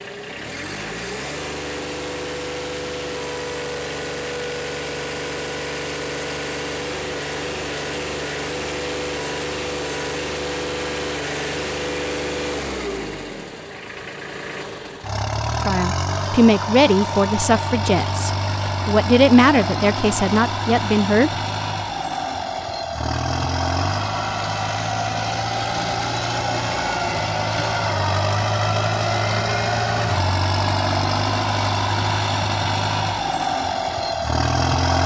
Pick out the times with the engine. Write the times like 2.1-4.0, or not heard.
0.0-35.0.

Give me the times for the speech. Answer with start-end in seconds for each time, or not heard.
15.7-21.4.